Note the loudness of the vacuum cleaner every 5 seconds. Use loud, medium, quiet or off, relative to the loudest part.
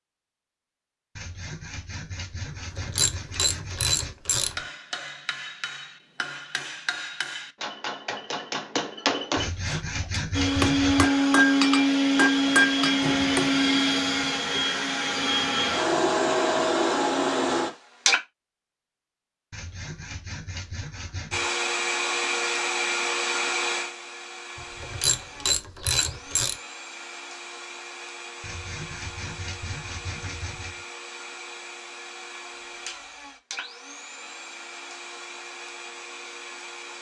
off, off, loud, loud, medium, quiet, quiet, quiet.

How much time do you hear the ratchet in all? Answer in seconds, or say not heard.
4 s.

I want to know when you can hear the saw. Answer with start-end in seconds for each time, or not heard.
1.1-4.2, 9.3-11.1, 19.5-21.5, 28.4-30.9.